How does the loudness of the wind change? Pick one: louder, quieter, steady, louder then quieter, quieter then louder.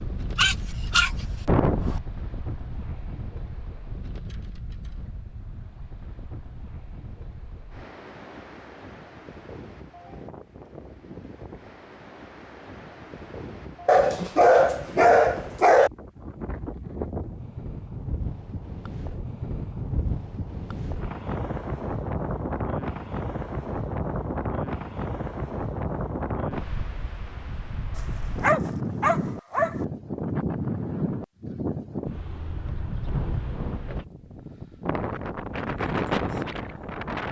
louder.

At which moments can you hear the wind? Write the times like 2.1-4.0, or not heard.
0.0-37.2.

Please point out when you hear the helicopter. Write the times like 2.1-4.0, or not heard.
not heard.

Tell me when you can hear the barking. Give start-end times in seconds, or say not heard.
0.3-2.0, 13.8-15.9, 27.9-29.8.